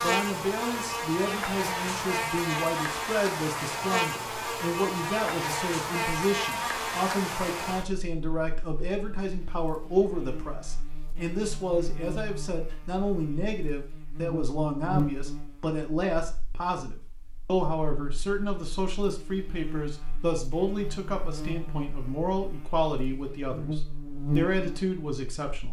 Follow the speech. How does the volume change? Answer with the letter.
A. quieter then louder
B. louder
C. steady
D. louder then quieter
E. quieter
C.